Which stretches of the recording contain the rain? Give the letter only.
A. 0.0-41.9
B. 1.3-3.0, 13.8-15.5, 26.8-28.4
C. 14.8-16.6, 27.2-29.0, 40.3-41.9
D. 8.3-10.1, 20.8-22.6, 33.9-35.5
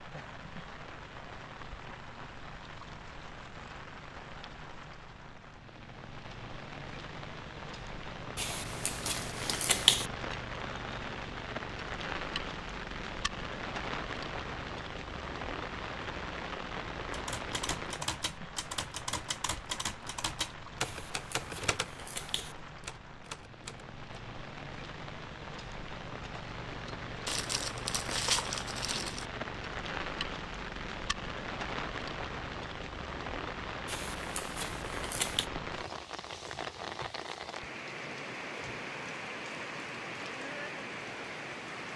A.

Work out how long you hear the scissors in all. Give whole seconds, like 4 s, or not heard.
5 s.